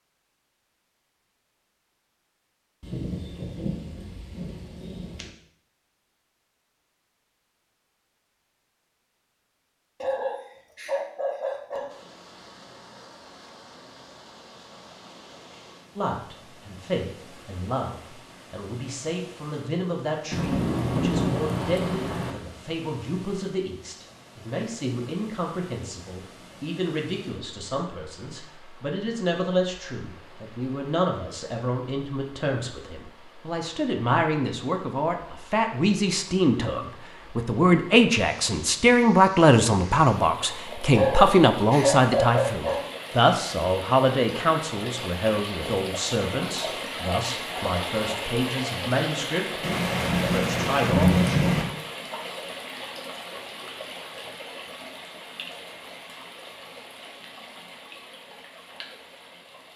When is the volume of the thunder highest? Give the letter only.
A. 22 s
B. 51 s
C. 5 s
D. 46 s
B.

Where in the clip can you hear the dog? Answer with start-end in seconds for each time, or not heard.
10.0-11.9, 40.9-42.9.